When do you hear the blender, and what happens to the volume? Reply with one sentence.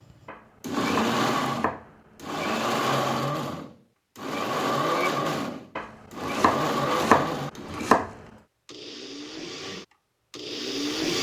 You can hear the blender from 0.1 to 11.1 s, getting quieter.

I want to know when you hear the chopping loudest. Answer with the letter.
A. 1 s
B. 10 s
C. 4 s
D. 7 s
D.